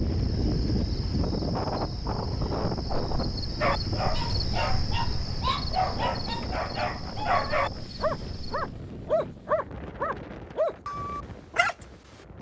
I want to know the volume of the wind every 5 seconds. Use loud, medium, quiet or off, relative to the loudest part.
loud, medium, quiet.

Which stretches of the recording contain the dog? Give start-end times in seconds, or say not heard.
3.6-11.8.